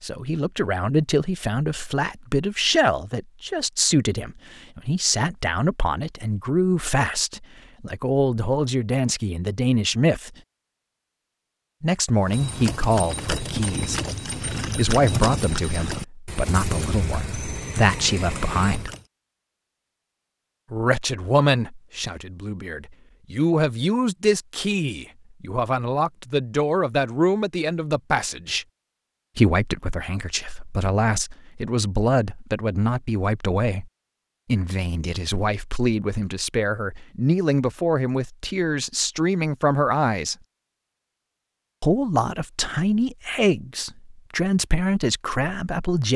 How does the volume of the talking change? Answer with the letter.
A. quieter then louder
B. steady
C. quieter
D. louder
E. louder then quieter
B.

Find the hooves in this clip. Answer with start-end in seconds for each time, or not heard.
12.2-19.1.